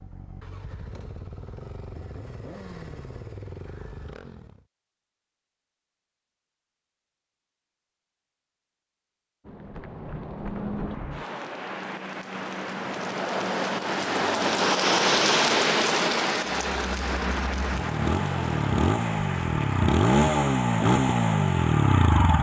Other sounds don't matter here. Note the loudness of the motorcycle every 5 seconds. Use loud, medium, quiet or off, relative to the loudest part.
quiet, off, off, medium, loud.